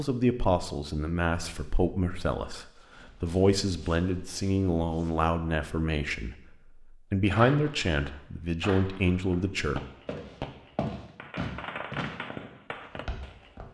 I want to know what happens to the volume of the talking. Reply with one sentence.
The loudness of the talking stays about the same.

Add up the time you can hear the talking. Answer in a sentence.
You can hear the talking for 10 seconds altogether.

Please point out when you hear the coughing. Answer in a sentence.
The coughing can't be heard in this clip.